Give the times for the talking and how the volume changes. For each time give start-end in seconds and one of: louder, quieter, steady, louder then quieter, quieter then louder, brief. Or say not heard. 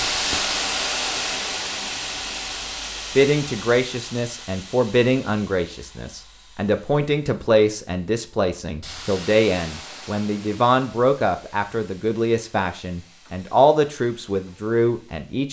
3.1-15.4 steady.